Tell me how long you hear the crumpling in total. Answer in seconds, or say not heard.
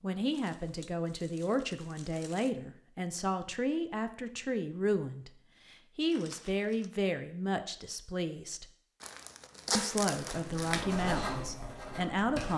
5 s.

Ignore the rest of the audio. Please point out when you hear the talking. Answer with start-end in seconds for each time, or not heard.
0.0-8.7, 9.8-12.5.